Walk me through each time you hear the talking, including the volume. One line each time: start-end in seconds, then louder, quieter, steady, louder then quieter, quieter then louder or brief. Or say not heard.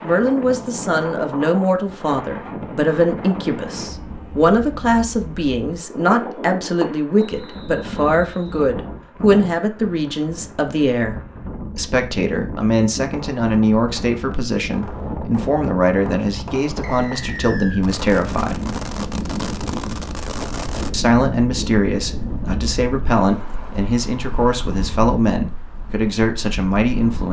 0.0-11.2 steady
11.8-18.6 steady
20.9-27.2 steady.